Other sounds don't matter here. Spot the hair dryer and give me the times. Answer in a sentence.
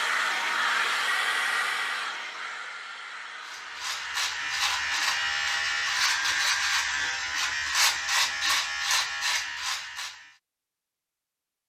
The hair dryer can be heard from 0.0 to 6.2 s.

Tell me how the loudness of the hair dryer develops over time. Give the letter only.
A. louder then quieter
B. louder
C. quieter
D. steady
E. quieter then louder
C.